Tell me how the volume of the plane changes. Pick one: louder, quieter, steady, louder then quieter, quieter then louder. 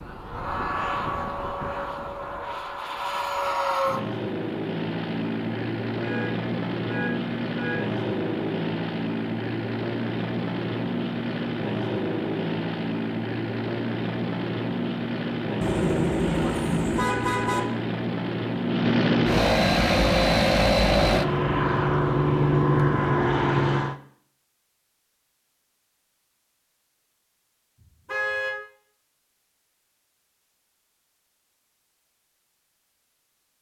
louder.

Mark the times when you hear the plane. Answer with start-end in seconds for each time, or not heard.
0.0-23.9.